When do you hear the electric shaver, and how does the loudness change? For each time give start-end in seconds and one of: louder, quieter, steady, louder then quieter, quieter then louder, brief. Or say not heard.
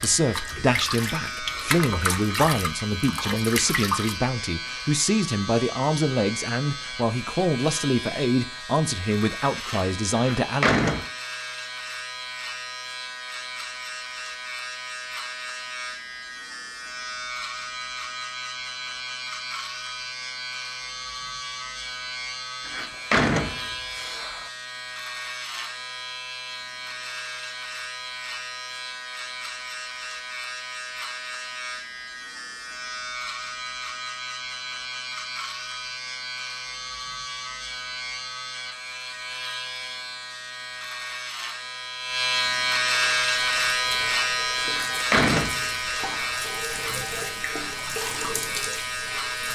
0.0-49.5 louder.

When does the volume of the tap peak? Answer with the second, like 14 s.
2 s.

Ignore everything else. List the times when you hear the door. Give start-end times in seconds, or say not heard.
10.2-11.1, 22.6-24.4, 44.6-46.5.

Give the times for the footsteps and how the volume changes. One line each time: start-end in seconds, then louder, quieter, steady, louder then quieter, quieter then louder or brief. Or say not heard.
not heard.